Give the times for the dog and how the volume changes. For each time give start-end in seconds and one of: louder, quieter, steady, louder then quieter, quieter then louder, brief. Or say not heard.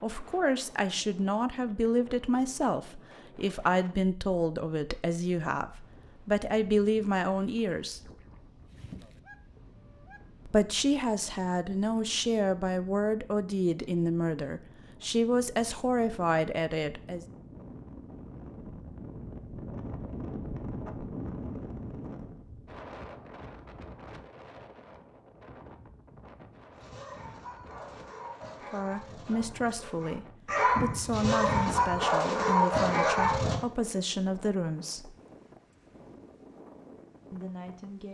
26.7-33.6 louder.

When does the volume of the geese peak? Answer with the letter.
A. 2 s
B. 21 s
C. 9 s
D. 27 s
C.